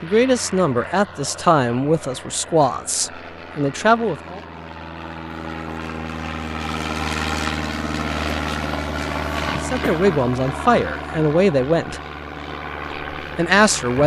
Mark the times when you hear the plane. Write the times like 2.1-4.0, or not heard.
0.0-14.0.